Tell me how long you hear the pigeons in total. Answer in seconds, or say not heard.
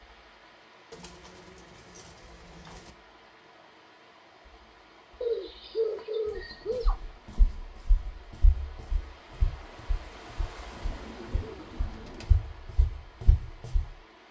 5 s.